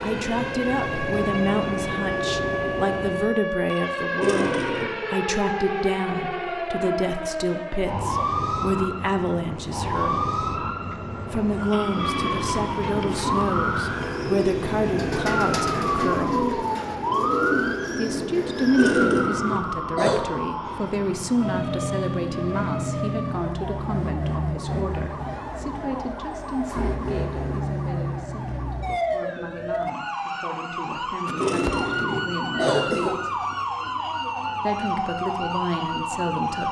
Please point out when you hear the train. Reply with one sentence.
You can hear the train from 0.0 to 3.4 s and from 11.7 to 23.3 s.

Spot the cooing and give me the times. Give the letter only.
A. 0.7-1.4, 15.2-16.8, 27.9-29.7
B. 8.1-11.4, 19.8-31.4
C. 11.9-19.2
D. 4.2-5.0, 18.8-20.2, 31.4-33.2
C.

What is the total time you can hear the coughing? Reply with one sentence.
You can hear the coughing for 4 seconds altogether.